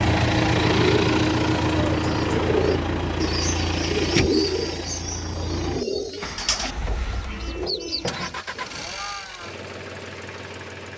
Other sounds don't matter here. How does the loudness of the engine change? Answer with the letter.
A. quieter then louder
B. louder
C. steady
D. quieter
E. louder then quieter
D.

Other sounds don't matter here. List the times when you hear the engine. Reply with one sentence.
You can hear the engine from 0.0 to 10.9 s.